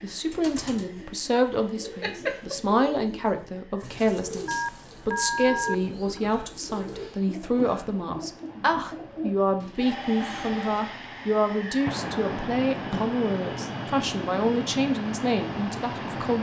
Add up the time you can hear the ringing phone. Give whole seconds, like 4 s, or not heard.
3 s.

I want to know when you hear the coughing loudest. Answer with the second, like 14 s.
2 s.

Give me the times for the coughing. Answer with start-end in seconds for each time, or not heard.
2.0-2.6, 6.0-8.0, 12.9-13.7.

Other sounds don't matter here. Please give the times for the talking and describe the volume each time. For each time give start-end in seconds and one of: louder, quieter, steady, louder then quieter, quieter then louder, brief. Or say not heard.
0.0-16.3 steady.